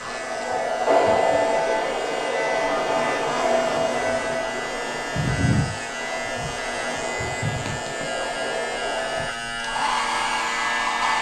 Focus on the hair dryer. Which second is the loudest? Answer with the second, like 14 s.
1 s.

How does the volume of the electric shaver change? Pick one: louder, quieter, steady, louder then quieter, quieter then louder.
steady.